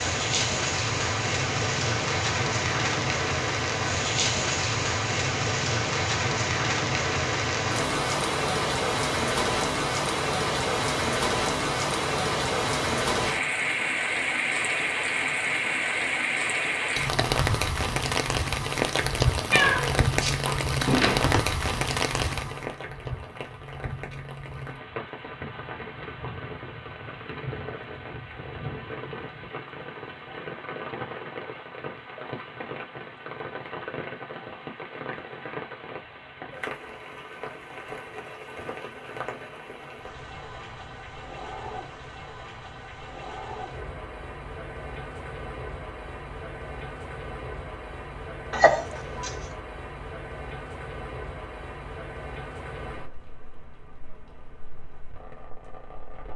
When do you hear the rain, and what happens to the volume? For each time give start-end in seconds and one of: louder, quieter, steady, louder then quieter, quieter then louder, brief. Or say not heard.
0.0-56.3 quieter.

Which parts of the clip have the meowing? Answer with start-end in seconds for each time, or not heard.
19.5-21.4, 48.5-49.4.